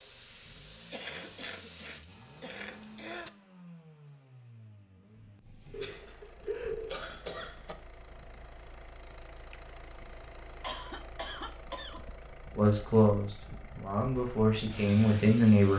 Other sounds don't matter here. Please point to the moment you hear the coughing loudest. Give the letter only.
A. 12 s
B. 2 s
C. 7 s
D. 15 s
C.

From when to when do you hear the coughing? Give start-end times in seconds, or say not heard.
0.9-3.3, 5.7-7.8, 10.6-12.0.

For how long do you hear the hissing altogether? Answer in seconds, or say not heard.
3 s.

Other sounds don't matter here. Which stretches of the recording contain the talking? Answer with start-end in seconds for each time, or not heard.
12.6-15.7.